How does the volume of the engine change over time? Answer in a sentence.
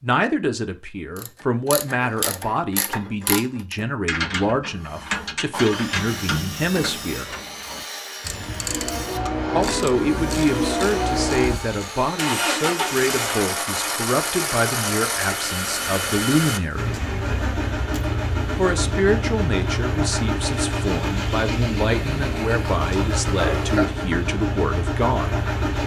The volume of the engine stays about the same.